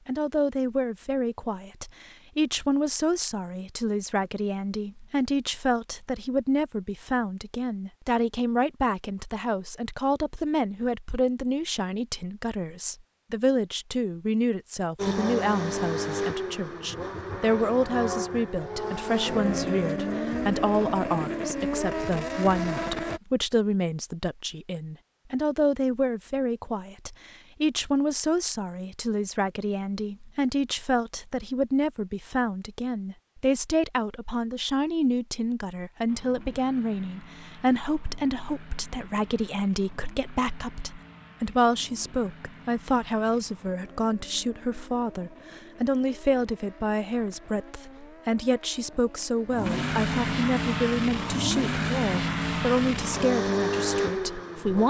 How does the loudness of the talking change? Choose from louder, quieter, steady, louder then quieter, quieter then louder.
steady.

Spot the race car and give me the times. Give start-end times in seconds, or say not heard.
14.9-23.2, 36.0-54.8.